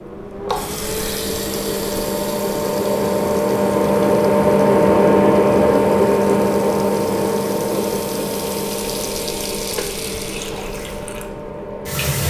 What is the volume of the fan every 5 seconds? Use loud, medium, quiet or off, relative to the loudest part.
loud, loud, quiet.